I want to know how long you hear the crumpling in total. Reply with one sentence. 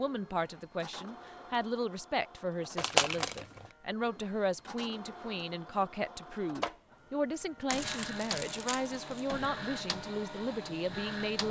You can hear the crumpling for 3 seconds altogether.